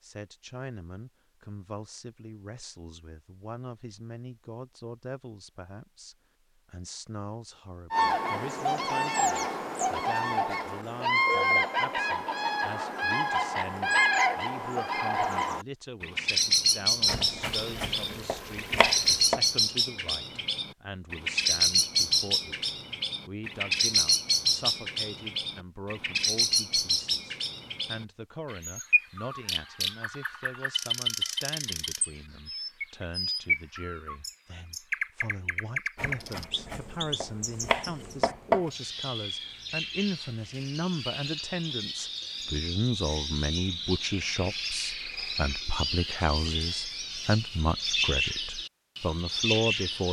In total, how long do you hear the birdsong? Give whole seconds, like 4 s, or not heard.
42 s.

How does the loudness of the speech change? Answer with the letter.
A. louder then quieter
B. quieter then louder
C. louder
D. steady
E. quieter
C.